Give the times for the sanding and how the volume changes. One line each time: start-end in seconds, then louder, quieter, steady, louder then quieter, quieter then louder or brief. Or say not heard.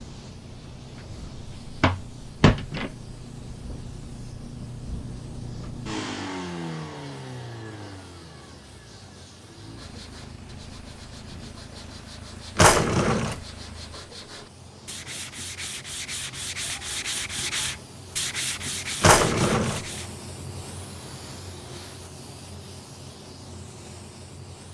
9.8-20.1 louder.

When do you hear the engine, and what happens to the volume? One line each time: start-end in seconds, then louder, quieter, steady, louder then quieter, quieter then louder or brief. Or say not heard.
0.0-14.1 louder then quieter.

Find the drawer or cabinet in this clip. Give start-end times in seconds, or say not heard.
1.4-2.9, 12.6-13.4, 19.0-19.9.